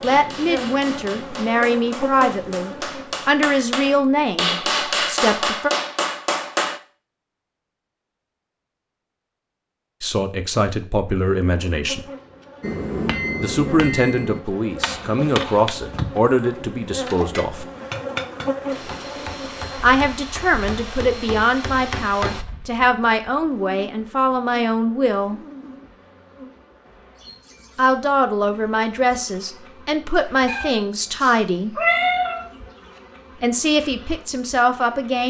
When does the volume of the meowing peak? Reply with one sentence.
The loudest moment of the meowing is at 32 seconds.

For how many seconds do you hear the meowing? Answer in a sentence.
You can hear the meowing for 2 seconds altogether.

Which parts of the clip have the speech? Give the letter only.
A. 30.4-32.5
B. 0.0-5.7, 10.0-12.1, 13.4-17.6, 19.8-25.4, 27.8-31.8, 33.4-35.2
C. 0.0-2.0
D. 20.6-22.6
B.